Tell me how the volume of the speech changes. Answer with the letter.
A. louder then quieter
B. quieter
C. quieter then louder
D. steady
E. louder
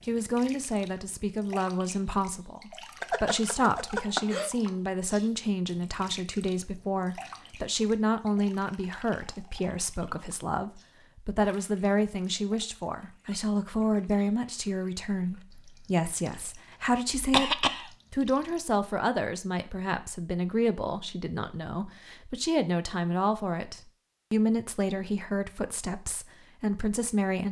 D.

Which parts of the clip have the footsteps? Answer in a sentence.
The footsteps can't be heard in this clip.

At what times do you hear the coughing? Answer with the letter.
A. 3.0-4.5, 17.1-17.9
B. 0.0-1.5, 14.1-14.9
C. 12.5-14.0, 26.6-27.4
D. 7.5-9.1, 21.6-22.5
A.